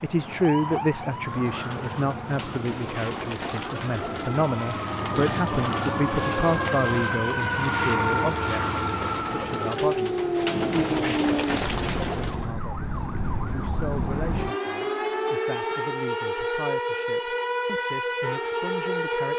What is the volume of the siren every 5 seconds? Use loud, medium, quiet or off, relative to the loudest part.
medium, loud, loud, loud.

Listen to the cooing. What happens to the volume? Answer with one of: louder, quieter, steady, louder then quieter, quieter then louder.
louder.